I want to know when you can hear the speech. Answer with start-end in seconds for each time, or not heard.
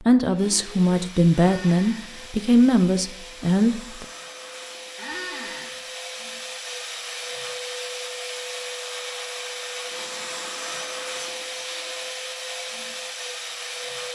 0.1-4.0.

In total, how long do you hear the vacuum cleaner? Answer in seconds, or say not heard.
14 s.